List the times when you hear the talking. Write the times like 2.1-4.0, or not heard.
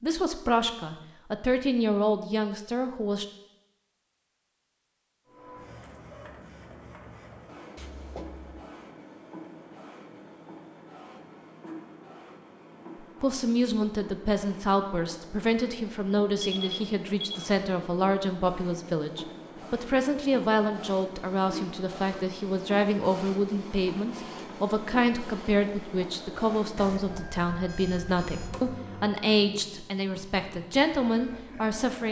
0.0-3.2, 13.2-32.0.